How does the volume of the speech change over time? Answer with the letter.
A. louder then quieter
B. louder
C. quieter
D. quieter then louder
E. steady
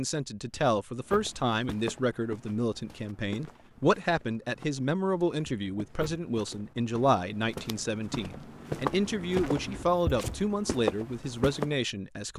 E.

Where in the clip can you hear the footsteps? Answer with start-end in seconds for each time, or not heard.
1.1-11.8.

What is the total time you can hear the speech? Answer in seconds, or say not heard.
12 s.